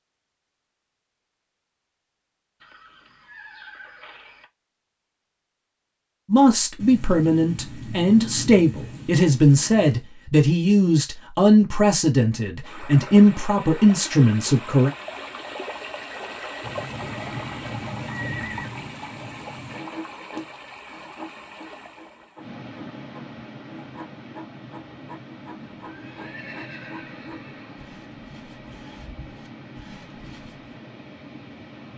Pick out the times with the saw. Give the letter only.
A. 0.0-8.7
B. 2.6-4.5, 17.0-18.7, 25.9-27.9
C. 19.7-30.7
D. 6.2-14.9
C.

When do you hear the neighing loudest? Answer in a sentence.
The volume of the neighing peaks at 18 seconds.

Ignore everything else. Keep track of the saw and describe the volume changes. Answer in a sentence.
The loudness of the saw goes down.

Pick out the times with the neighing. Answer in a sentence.
The neighing can be heard from 2.6 to 4.5 s, from 17.0 to 18.7 s and from 25.9 to 27.9 s.